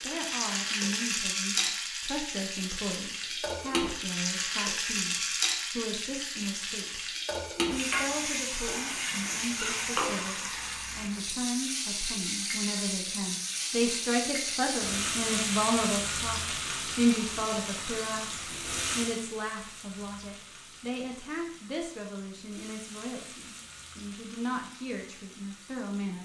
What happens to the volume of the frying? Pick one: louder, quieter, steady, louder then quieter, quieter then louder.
quieter.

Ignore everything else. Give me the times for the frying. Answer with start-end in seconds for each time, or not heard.
0.0-26.1.